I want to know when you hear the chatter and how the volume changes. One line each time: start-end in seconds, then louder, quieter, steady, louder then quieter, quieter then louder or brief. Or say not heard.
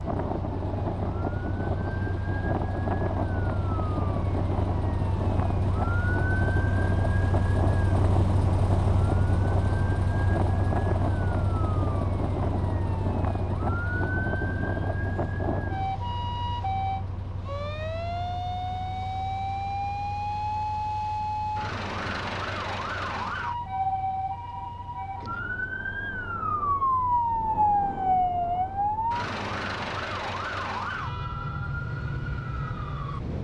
not heard.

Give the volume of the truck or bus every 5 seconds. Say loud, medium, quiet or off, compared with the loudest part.
medium, loud, loud, medium, quiet, quiet, quiet.